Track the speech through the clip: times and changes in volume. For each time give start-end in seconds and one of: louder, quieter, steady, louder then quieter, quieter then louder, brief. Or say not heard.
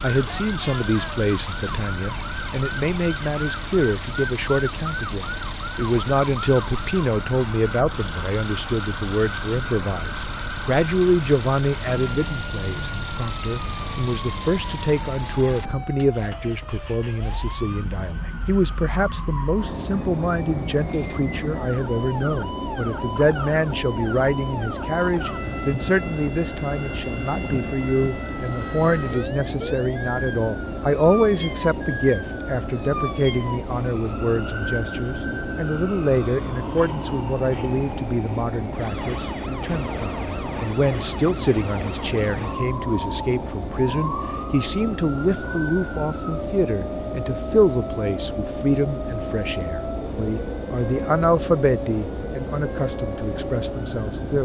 0.0-54.4 steady.